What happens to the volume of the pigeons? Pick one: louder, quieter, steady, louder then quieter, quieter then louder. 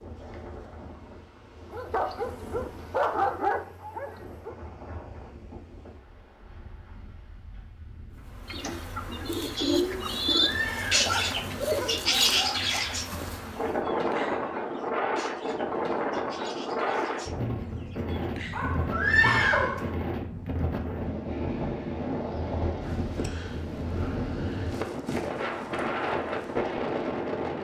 quieter.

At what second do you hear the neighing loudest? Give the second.
19 s.